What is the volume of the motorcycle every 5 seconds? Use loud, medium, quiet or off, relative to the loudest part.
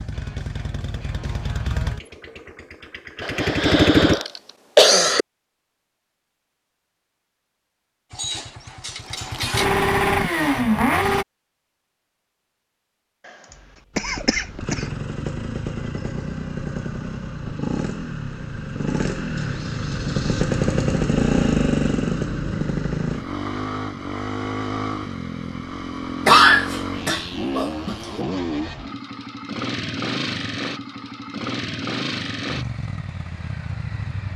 loud, loud, loud, medium, loud, medium, medium.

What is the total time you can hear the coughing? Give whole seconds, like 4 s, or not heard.
5 s.